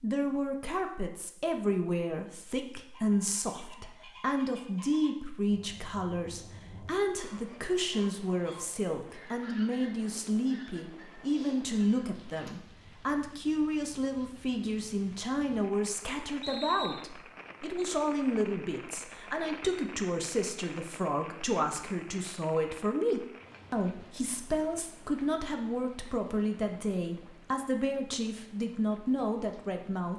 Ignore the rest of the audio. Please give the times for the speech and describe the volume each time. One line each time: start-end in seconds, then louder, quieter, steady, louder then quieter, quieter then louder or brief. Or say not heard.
0.0-30.1 steady.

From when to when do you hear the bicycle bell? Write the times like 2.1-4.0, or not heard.
not heard.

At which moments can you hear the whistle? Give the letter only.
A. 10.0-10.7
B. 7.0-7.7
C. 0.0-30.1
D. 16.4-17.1
D.